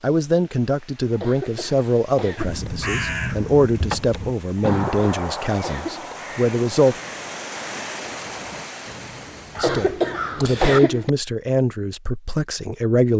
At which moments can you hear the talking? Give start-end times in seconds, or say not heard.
0.0-7.0, 9.6-13.1.